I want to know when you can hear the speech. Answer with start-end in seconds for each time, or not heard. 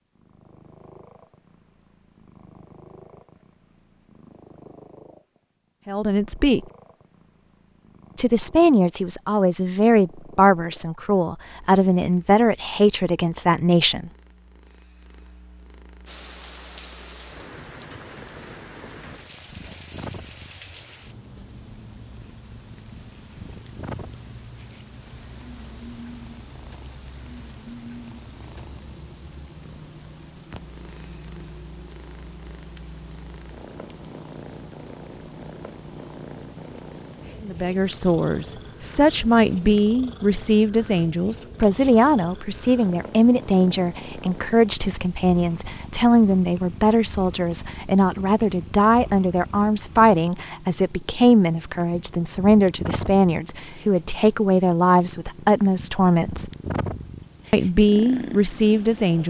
5.8-6.6, 8.2-14.1, 37.4-56.5, 57.5-59.2.